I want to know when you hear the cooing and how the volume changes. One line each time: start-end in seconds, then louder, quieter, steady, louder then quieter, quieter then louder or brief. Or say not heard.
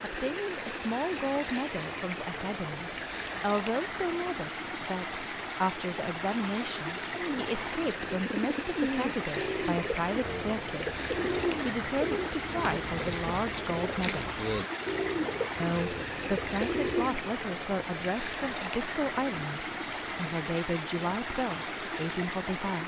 7.2-17.2 steady.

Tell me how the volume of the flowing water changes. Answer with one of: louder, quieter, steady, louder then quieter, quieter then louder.
steady.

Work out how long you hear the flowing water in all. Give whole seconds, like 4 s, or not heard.
23 s.